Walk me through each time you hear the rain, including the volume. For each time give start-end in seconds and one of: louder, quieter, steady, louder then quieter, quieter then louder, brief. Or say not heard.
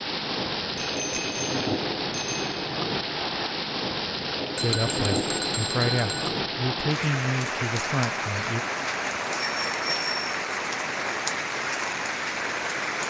0.0-13.0 steady.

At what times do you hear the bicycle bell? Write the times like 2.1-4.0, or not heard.
0.8-2.5, 4.5-6.3, 9.3-10.3.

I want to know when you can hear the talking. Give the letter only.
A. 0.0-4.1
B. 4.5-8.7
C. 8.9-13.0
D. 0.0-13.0
B.